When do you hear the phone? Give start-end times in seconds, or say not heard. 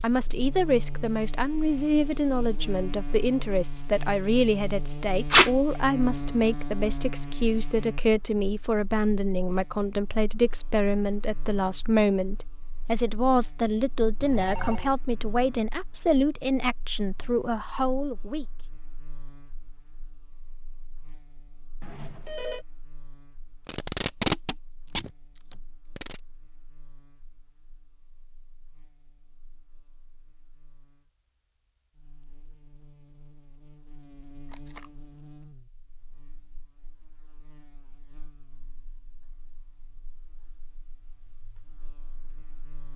14.2-15.0, 21.8-22.6.